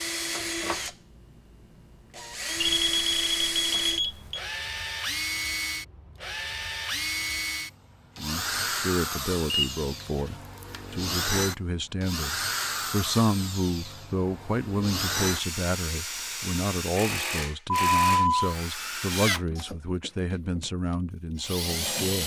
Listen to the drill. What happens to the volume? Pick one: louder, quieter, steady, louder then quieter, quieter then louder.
steady.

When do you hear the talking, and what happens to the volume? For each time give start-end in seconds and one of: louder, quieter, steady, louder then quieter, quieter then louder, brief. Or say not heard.
8.2-22.2 steady.